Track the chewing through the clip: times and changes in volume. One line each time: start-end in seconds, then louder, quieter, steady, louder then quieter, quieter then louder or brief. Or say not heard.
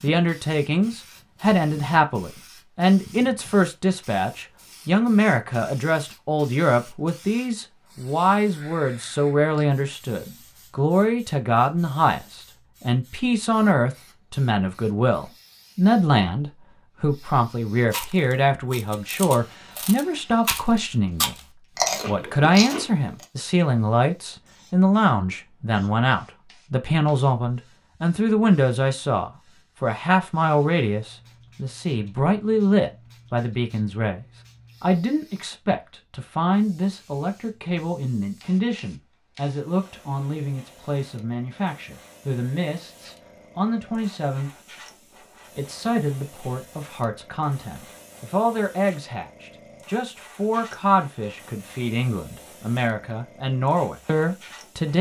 17.8-23.2 louder then quieter.